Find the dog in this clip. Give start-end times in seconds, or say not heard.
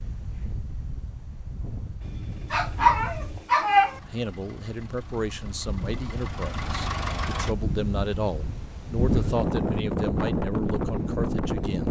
2.5-4.0.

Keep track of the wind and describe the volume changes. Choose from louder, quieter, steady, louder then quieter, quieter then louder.
louder.